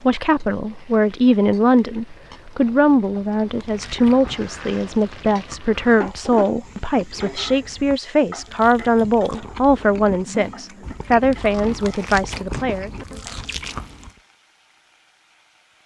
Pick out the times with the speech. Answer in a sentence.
The speech can be heard from 0.0 to 12.9 s.